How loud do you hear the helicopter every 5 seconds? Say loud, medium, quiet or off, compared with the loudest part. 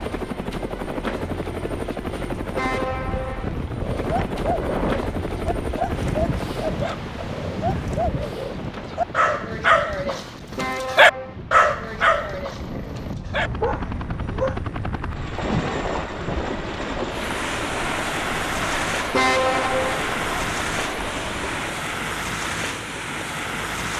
loud, loud, medium, loud, loud.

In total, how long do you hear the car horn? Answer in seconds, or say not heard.
3 s.